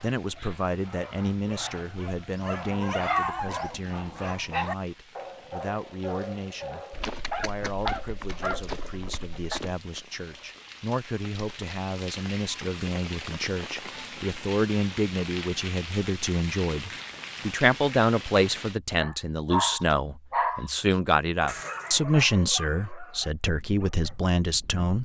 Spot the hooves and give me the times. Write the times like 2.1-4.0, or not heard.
6.9-9.8.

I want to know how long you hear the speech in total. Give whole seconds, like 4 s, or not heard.
25 s.